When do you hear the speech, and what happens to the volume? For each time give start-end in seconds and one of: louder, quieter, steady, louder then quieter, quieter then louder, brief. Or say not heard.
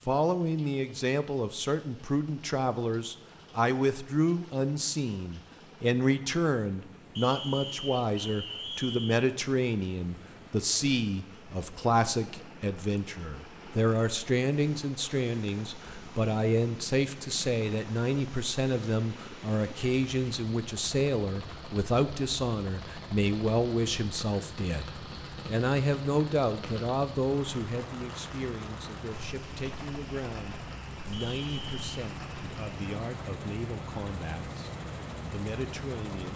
0.1-34.7 quieter
35.3-36.3 brief.